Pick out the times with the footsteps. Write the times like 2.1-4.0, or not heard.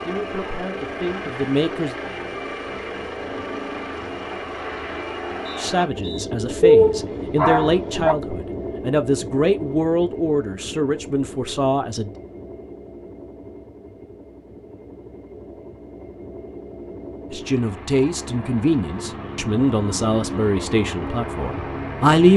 not heard.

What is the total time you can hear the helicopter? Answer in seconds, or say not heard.
22 s.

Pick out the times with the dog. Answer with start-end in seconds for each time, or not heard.
6.6-8.2.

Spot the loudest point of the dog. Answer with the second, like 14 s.
7 s.